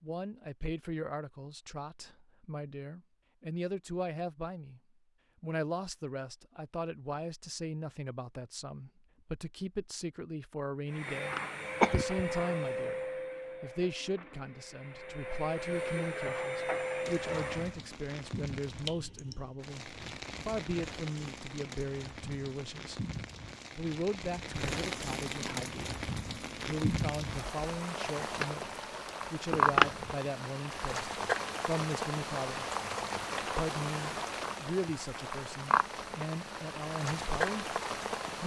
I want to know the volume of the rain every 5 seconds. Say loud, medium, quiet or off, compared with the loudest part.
off, off, off, medium, medium, loud, loud, loud.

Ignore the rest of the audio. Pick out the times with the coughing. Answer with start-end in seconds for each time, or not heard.
11.1-12.4, 29.5-30.1.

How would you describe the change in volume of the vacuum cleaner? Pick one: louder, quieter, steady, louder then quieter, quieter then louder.
quieter then louder.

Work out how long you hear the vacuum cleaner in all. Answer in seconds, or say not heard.
7 s.